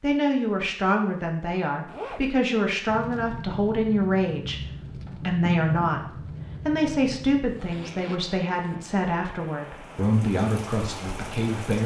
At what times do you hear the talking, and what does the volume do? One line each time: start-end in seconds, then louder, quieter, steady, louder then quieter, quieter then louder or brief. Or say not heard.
0.0-11.8 steady.